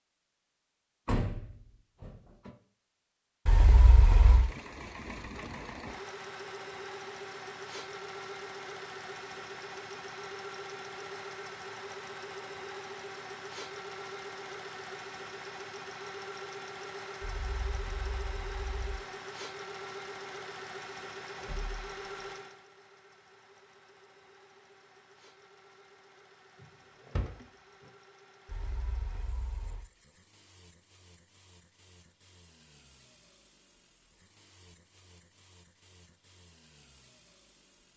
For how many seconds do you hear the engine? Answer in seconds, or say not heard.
34 s.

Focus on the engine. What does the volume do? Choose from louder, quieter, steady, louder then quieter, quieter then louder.
quieter.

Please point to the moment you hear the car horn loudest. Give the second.
4 s.